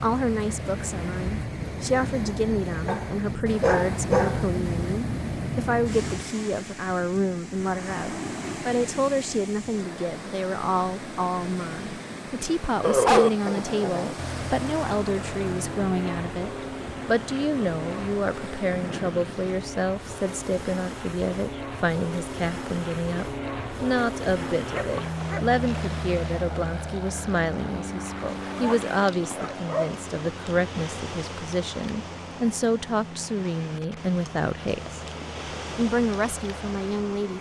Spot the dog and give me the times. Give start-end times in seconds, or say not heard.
2.9-4.5, 12.8-14.2, 24.6-25.6, 28.5-29.9.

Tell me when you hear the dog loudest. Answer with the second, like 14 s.
13 s.